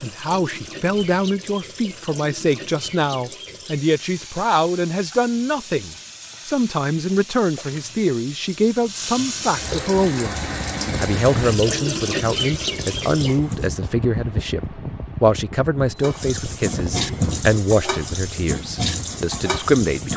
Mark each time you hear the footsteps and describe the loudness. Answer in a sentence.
You can't hear the footsteps here.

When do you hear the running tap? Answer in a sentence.
The running tap can be heard from 0.0 to 13.8 s and from 16.0 to 20.1 s.